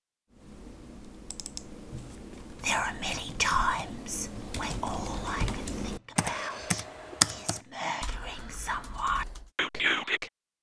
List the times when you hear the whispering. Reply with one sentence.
You can hear the whispering from 2.6 to 10.3 s.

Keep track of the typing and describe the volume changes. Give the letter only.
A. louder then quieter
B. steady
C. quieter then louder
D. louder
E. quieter
A.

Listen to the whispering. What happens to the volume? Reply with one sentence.
The loudness of the whispering goes down, then up.